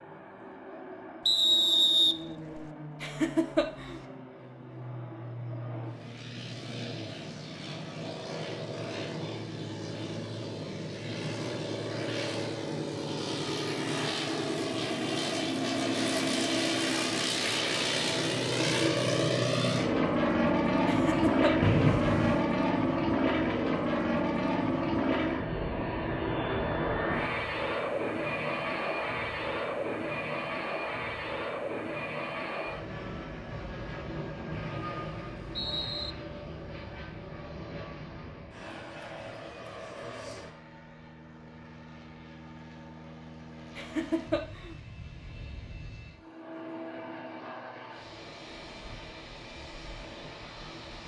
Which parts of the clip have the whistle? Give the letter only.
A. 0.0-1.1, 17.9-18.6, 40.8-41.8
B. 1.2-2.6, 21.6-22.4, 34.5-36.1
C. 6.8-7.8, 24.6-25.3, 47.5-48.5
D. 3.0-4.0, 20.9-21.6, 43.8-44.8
B.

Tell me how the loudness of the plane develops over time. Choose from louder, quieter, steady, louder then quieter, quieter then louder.
louder then quieter.